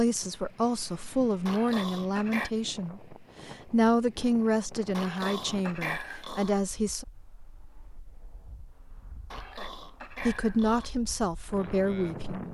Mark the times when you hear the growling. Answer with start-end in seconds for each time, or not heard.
1.4-2.5, 4.9-6.5, 9.3-10.9.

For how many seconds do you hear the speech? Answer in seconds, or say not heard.
9 s.